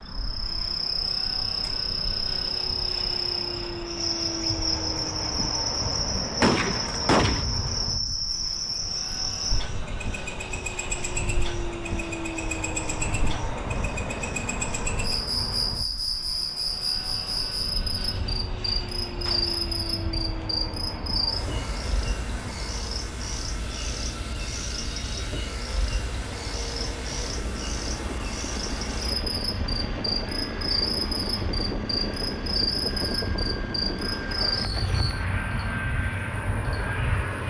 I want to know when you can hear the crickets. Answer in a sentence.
The crickets can be heard from 0.0 to 37.4 s.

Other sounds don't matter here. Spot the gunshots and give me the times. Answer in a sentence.
You can hear the gunshots from 6.4 to 7.5 s and from 19.2 to 19.8 s.